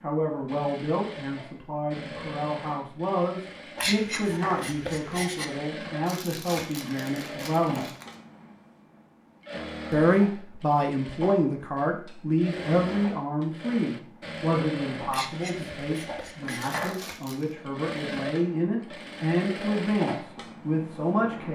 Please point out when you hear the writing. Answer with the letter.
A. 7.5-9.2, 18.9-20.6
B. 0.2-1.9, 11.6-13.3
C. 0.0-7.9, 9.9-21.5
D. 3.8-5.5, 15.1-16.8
D.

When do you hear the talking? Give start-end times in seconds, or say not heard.
0.0-7.9, 9.9-21.5.